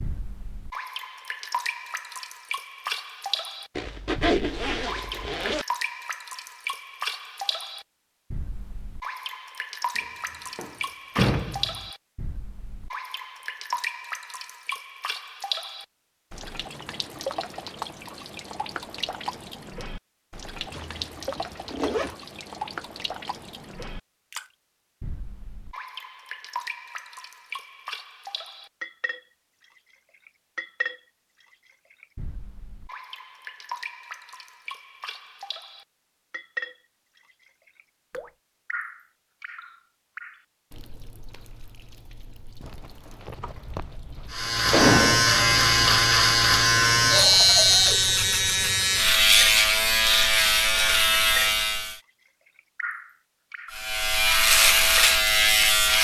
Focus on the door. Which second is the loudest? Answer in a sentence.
The loudest moment of the door is at 45 seconds.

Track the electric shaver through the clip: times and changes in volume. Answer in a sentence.
You can hear the electric shaver from 44.3 to 52.0 s, at a steady volume; and briefly from 53.7 to 55.9 s.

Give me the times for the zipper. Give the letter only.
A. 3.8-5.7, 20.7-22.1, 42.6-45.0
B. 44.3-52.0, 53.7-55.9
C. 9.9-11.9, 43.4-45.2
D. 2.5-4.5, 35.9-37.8
A.